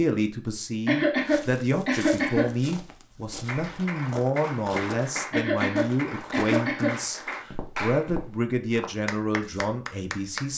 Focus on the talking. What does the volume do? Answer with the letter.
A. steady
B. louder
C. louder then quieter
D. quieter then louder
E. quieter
A.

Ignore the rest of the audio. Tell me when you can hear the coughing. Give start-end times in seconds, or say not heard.
0.8-2.5, 5.3-7.0.